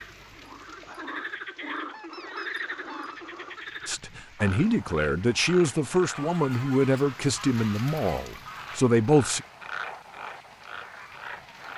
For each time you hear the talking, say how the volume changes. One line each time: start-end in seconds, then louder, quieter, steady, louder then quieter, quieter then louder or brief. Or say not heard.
3.9-9.4 steady.